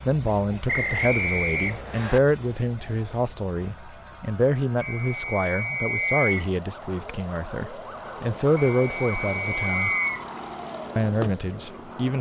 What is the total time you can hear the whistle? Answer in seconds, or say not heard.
5 s.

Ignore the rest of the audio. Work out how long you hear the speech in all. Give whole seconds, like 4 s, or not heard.
11 s.